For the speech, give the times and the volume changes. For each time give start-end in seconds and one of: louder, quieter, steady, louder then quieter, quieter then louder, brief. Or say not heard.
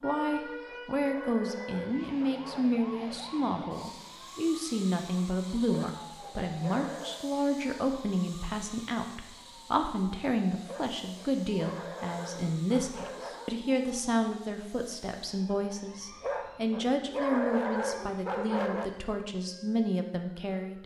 0.0-20.8 steady.